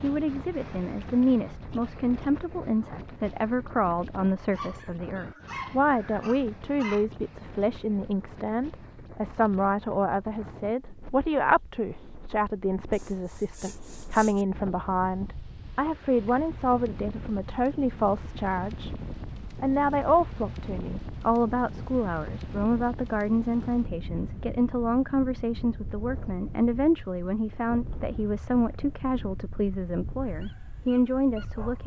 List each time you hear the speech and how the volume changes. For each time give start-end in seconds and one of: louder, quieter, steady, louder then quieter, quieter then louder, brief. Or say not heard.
0.0-18.9 steady
19.6-31.8 steady.